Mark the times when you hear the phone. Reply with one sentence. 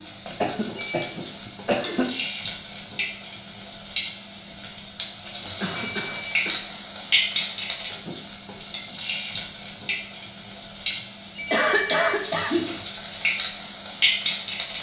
You can hear the phone from 0.2 to 1.1 s, from 5.2 to 6.5 s and from 10.8 to 12.2 s.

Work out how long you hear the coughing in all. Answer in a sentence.
You can hear the coughing for 4 seconds altogether.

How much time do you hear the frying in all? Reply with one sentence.
The frying can be heard for 15 seconds in total.